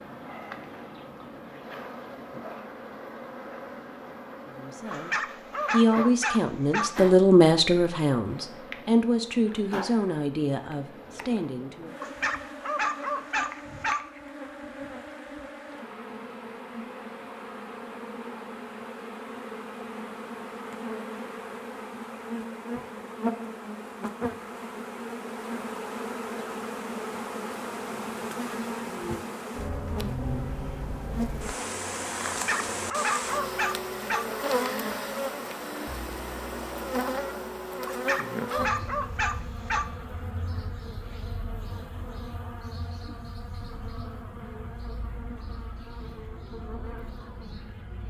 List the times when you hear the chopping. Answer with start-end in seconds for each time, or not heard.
not heard.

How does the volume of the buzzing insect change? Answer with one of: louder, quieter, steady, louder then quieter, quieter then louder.
louder then quieter.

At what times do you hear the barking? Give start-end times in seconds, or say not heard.
4.9-6.9, 12.0-14.0, 32.2-34.2, 37.9-39.9.